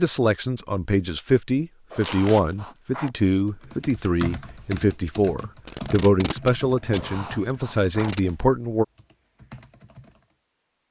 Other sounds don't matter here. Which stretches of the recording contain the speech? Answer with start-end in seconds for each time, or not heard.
0.0-8.8.